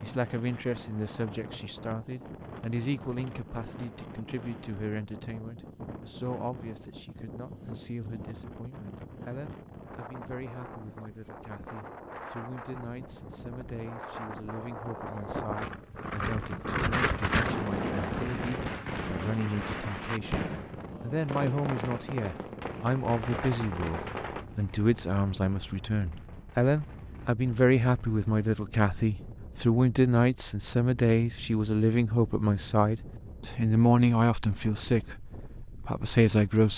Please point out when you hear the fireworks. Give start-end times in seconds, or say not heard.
16.9-28.5.